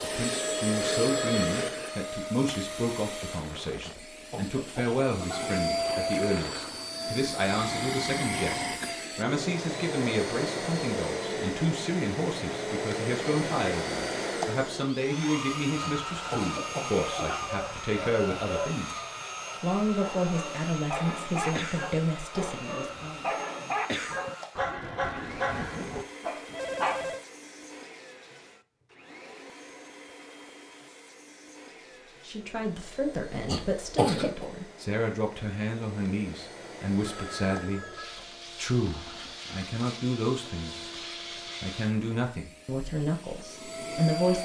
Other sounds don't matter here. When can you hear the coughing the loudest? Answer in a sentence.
The loudest moment of the coughing is at 34 seconds.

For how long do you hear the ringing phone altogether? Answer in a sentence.
You can hear the ringing phone for 3 seconds altogether.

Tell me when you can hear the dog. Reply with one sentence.
You can hear the dog from 16.9 to 27.1 s.